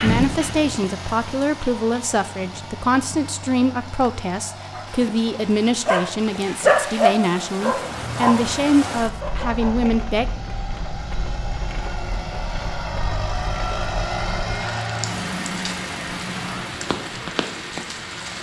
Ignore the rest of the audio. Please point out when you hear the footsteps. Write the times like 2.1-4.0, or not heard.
not heard.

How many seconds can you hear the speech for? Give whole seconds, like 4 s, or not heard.
10 s.